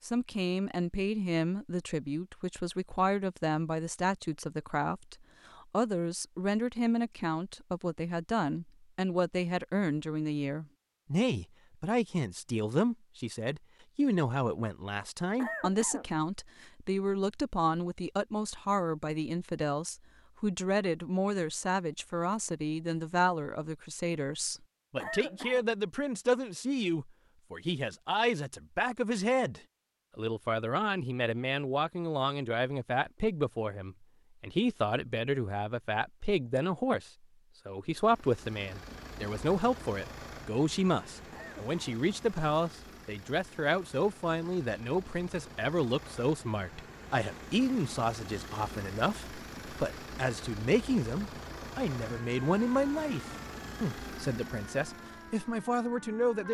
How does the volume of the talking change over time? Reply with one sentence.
The volume of the talking stays about the same.